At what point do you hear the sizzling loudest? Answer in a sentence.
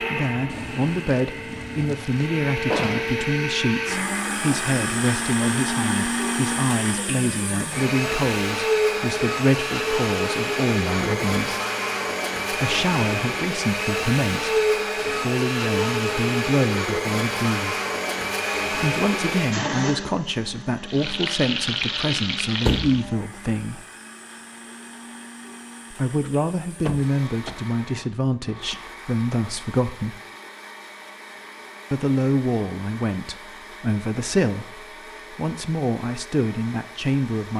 The loudest moment of the sizzling is at 22 seconds.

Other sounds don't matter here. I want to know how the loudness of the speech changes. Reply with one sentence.
The loudness of the speech stays about the same.